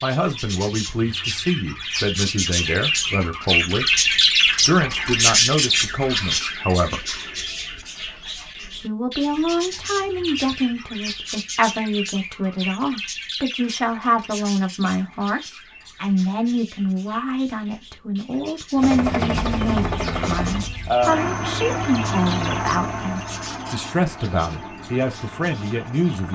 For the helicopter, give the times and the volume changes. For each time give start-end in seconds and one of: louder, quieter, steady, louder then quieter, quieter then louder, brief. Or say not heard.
18.8-26.2 quieter.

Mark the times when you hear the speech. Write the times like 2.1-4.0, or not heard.
0.0-3.9, 4.7-7.0, 8.8-26.2.